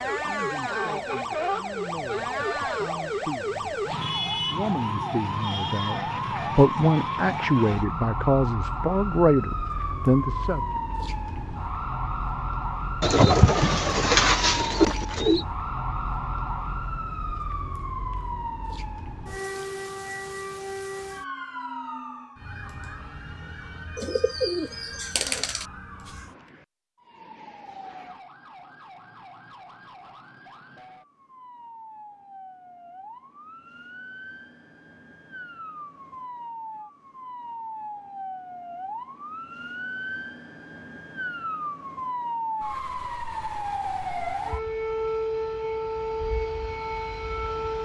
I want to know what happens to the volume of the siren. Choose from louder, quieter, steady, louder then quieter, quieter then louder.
quieter then louder.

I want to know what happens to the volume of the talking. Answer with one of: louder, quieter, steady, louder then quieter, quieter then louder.
louder.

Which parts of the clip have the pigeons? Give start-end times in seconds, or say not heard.
13.0-15.4, 23.9-25.6.